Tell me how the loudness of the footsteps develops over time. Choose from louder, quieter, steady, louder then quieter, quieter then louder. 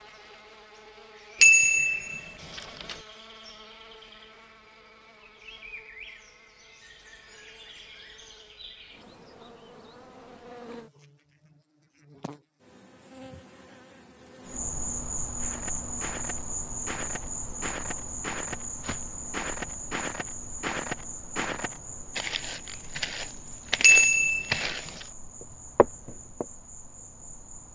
louder.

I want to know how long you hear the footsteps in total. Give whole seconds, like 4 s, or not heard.
11 s.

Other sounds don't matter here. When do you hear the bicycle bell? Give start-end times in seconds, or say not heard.
1.4-3.0, 23.8-24.6.